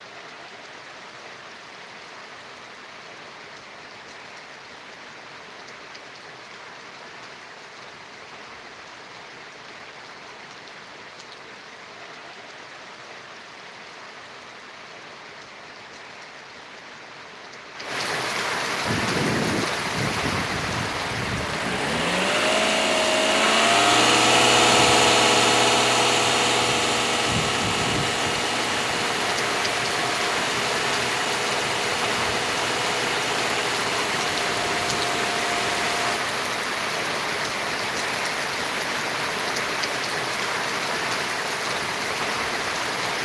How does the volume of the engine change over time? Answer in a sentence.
The volume of the engine goes up, then down.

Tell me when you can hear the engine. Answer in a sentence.
You can hear the engine from 18.8 to 36.2 s.